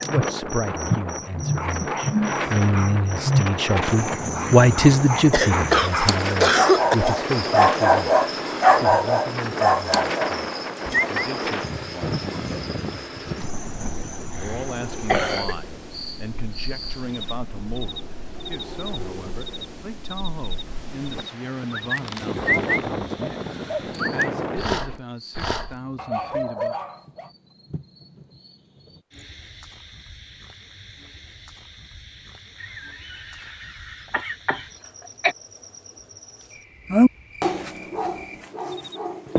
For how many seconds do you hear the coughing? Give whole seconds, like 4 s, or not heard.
6 s.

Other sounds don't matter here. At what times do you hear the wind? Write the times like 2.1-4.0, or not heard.
0.0-25.0.